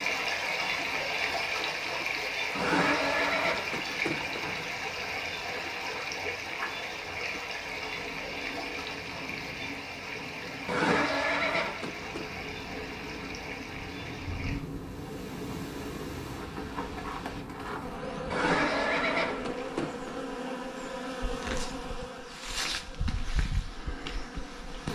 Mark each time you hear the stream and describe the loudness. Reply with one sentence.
The stream can be heard from 0.0 to 17.4 s, getting quieter.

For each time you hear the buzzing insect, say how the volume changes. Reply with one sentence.
The buzzing insect can be heard from 0.0 to 24.8 s, getting louder.